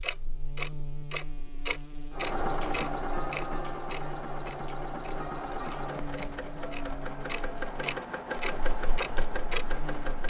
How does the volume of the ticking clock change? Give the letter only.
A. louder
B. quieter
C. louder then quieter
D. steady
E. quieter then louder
E.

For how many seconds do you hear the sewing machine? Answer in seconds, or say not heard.
8 s.